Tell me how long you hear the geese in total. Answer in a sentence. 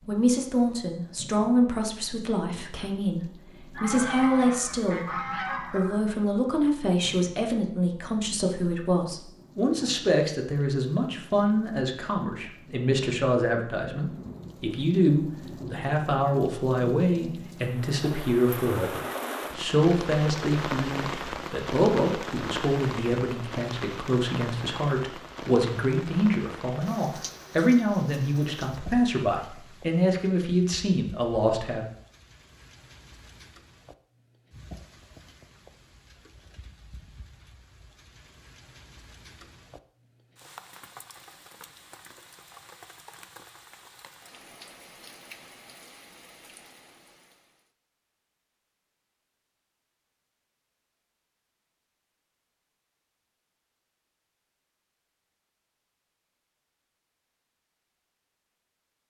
You can hear the geese for 2 seconds altogether.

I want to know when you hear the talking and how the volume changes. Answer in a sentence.
You can hear the talking from 0.1 to 31.9 s, at a steady volume.